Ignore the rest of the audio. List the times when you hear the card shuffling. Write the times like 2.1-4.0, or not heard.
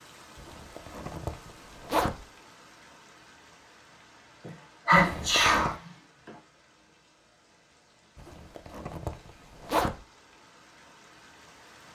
not heard.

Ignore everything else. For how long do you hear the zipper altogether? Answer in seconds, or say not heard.
5 s.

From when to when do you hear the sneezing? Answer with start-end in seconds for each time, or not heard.
4.5-6.3.